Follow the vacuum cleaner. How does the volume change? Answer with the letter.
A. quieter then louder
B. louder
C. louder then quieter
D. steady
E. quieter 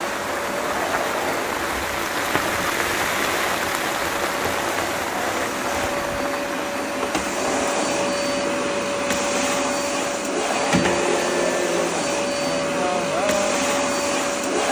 B.